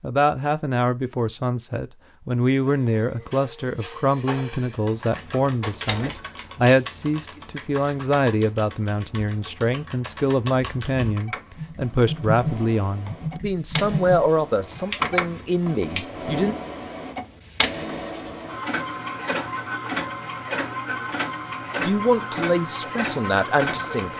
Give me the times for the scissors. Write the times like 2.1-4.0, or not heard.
6.0-8.0, 14.9-16.0.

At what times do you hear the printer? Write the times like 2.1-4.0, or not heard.
2.6-6.2, 11.2-24.1.